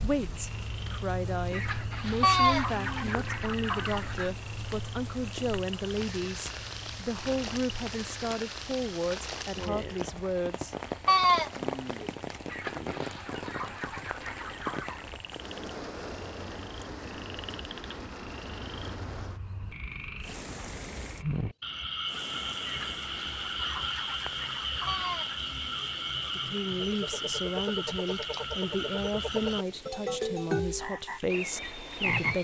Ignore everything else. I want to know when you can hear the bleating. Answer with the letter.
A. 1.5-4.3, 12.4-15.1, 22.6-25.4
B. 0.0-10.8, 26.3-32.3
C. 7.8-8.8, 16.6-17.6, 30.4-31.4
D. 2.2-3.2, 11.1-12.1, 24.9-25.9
D.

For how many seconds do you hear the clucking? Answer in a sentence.
The clucking can be heard for 8 seconds in total.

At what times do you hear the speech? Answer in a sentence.
The speech can be heard from 0.0 to 10.8 s and from 26.3 to 32.3 s.